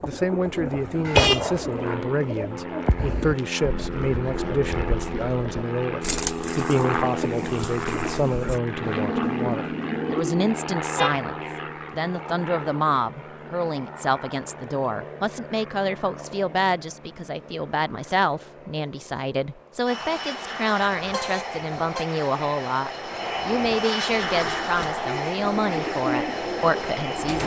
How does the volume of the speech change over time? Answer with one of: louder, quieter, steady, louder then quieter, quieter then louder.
steady.